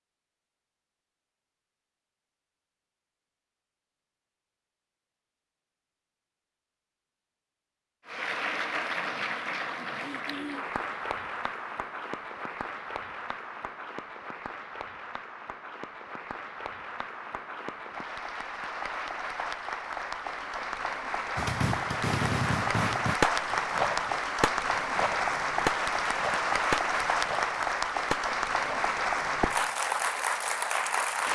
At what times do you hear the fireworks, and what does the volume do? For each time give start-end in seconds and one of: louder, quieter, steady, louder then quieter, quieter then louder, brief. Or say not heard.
21.4-29.6 quieter.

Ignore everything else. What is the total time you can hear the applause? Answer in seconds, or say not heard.
23 s.